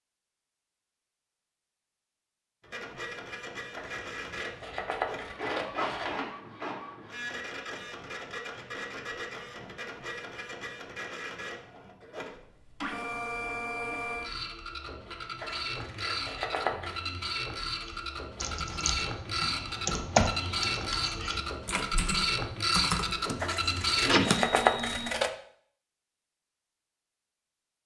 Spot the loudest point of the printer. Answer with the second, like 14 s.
24 s.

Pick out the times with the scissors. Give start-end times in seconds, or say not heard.
3.8-6.2, 15.4-17.0, 23.4-25.3.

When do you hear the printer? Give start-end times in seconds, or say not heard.
2.6-25.1.